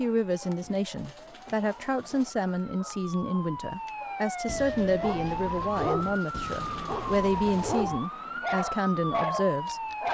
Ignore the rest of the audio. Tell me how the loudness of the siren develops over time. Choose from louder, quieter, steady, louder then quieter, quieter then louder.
louder.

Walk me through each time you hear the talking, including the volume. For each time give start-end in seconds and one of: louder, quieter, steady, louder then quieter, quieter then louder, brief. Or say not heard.
0.0-10.1 steady.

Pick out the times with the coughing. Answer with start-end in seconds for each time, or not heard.
not heard.